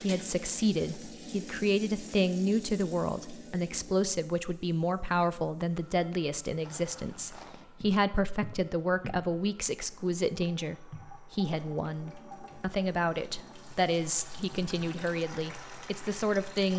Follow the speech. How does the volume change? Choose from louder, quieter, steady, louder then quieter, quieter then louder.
steady.